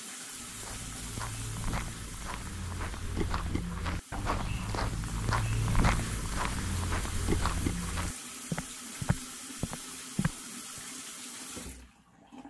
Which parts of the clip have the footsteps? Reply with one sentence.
You can hear the footsteps from 0.3 to 10.8 s.